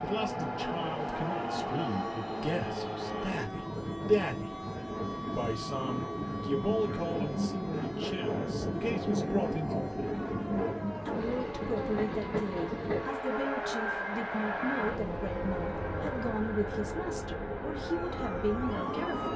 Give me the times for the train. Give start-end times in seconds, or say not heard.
0.0-19.3.